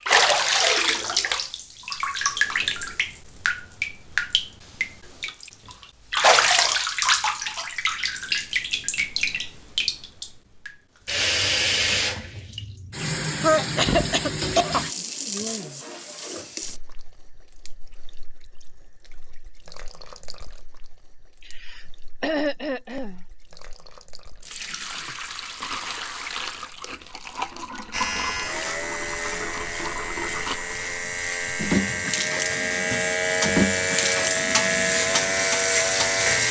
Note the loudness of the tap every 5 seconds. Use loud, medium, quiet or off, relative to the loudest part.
loud, loud, loud, quiet, quiet, medium, medium, medium.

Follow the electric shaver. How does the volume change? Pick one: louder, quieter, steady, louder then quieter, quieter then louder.
louder.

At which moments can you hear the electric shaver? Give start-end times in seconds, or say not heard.
27.9-36.4.